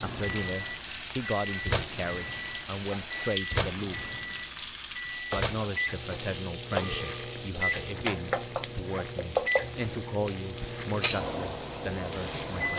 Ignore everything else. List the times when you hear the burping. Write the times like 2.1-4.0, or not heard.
6.7-7.5.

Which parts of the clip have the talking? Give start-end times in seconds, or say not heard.
0.0-4.1, 5.3-12.7.